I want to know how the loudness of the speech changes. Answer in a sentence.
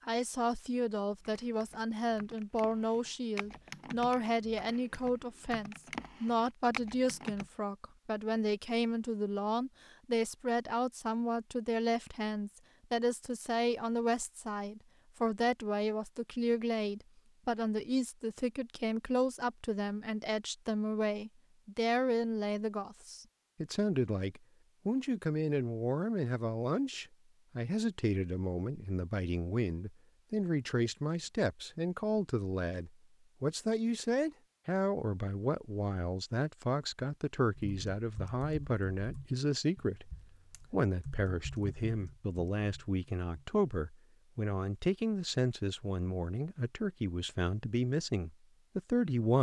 The volume of the speech stays about the same.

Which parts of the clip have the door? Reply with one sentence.
The door can't be heard in this clip.